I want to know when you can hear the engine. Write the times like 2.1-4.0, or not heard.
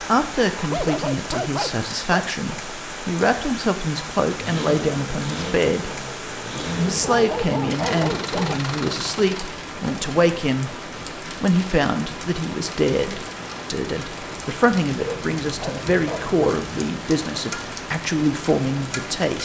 4.3-9.6.